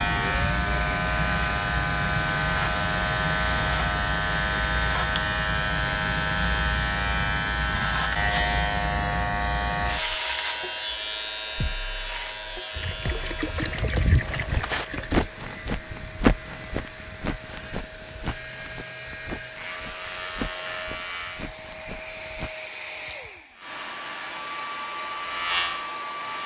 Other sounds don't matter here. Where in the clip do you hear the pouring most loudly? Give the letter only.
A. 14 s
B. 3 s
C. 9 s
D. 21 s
A.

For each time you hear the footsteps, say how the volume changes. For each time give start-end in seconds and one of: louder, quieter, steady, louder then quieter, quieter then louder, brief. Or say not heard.
14.2-22.6 quieter.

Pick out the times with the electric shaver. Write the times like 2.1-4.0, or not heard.
0.0-21.5, 23.5-26.4.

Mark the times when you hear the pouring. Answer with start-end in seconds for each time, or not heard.
12.8-15.2.